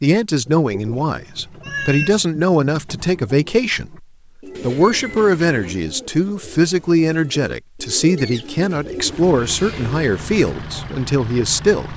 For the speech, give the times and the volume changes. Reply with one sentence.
You can hear the speech from 0.0 to 11.9 s, at a steady volume.